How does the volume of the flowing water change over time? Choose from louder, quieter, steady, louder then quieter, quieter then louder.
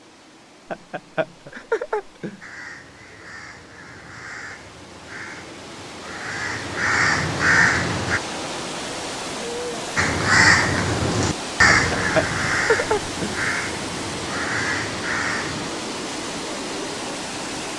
louder.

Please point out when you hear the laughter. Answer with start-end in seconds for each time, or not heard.
0.7-2.4, 11.7-13.3.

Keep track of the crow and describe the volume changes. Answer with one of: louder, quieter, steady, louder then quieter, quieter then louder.
louder then quieter.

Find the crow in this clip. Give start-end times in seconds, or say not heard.
2.4-8.2, 9.9-15.7.